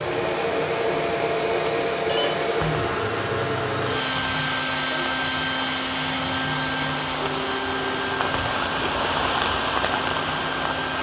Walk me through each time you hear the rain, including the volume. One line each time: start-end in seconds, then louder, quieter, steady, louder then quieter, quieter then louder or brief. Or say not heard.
0.0-10.9 louder.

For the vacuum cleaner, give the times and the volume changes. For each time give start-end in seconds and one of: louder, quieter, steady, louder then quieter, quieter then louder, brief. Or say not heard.
0.0-10.9 quieter.